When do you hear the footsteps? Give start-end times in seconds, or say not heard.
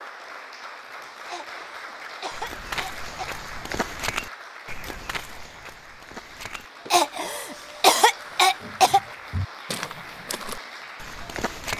2.3-7.0, 8.6-11.7.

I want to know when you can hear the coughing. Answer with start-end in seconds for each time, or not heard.
1.2-3.4, 6.9-9.0.